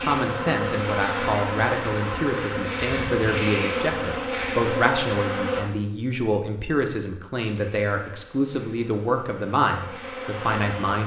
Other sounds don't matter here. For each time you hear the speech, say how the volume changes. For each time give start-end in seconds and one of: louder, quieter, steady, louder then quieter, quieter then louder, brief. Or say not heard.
0.0-11.0 steady.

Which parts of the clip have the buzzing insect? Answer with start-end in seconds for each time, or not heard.
0.0-5.7, 7.5-11.0.